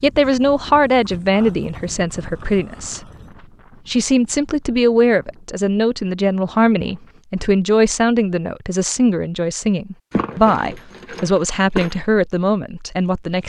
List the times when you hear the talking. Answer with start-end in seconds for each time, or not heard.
0.0-3.0, 3.9-13.4.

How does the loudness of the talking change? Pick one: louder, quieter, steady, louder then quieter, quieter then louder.
steady.